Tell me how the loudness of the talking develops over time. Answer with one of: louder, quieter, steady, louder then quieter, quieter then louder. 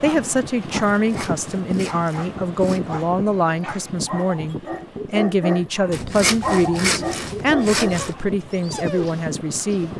steady.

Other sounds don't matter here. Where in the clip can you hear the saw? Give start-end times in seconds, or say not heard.
0.9-3.0, 5.9-8.2.